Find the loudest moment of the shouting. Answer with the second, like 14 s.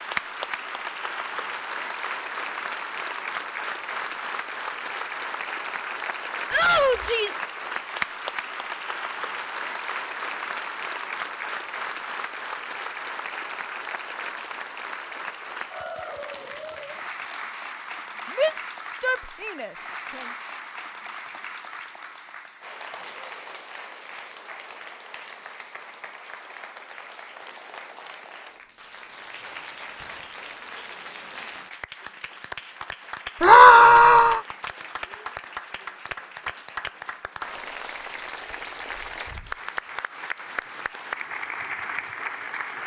34 s.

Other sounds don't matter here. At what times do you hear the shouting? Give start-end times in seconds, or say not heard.
6.5-7.5, 18.4-20.2, 33.4-34.4.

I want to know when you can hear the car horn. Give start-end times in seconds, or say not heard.
not heard.